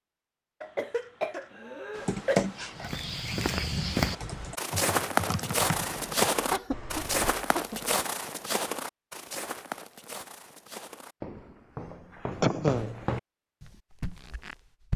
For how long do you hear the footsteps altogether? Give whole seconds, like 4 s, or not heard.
12 s.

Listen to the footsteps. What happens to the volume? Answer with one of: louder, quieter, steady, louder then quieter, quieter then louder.
quieter then louder.